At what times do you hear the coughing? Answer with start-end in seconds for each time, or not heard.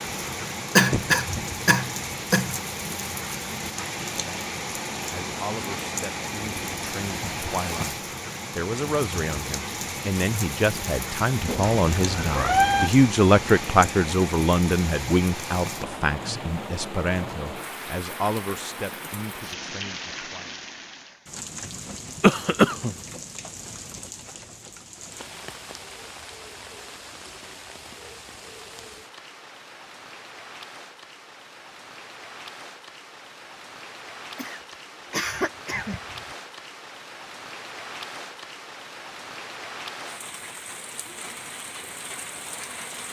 0.8-2.5, 22.2-22.9, 34.4-36.2.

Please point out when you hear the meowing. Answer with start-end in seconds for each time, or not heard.
11.4-12.9.